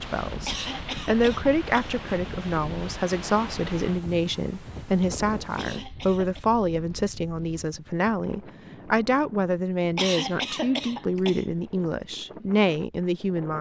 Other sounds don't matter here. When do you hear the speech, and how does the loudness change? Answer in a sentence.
The speech can be heard from 0.0 to 13.5 s, at a steady volume.